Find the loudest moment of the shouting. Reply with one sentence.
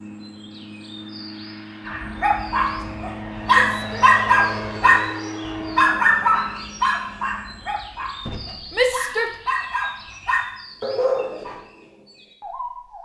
The volume of the shouting peaks at 9 seconds.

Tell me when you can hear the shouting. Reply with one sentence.
You can hear the shouting from 3.5 to 4.1 s and from 8.7 to 9.4 s.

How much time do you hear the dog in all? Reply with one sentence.
The dog can be heard for 10 seconds in total.